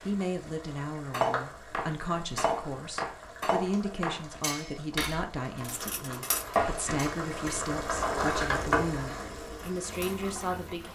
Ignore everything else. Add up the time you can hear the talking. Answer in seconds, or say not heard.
11 s.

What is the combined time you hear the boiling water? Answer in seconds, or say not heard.
11 s.